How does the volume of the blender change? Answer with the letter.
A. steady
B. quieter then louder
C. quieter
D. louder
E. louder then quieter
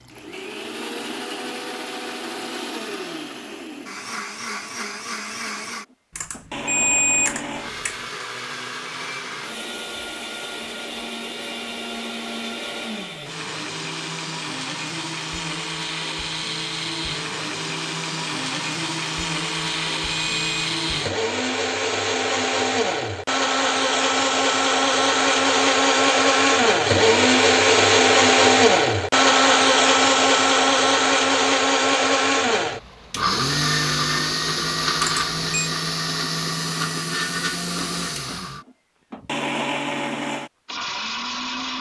E.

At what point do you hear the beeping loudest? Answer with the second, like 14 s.
7 s.